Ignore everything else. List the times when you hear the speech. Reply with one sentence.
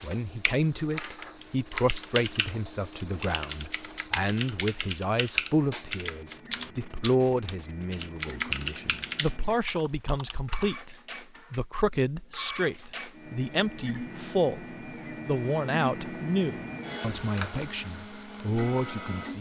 You can hear the speech from 0.0 to 19.3 s.